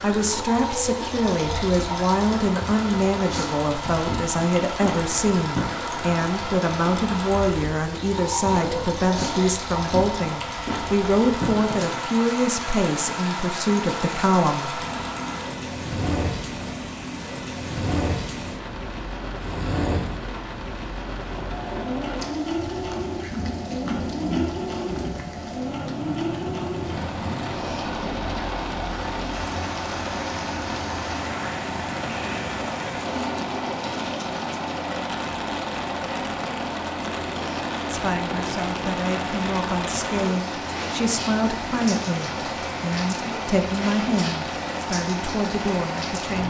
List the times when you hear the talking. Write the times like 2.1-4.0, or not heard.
0.0-14.8, 37.9-46.4.